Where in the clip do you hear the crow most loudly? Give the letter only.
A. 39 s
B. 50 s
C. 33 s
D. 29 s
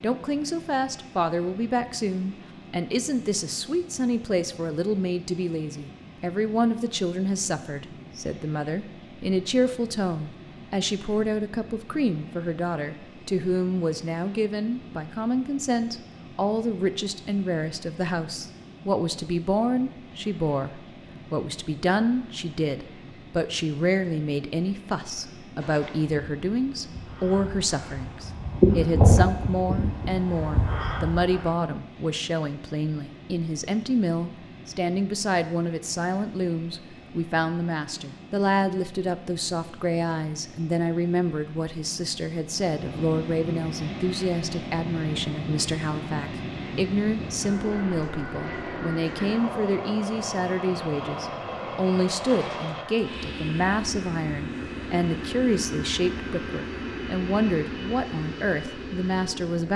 D.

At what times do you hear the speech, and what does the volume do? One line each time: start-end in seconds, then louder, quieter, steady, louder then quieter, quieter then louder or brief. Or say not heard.
0.0-59.7 steady.